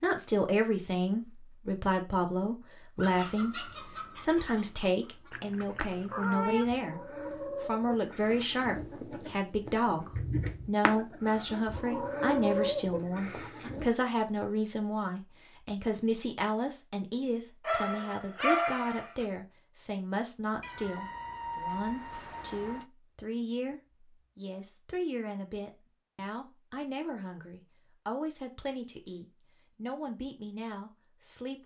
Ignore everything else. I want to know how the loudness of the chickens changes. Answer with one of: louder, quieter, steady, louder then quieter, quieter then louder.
louder.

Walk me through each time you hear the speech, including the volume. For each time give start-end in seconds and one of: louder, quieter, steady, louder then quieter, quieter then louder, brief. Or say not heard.
0.0-31.6 quieter.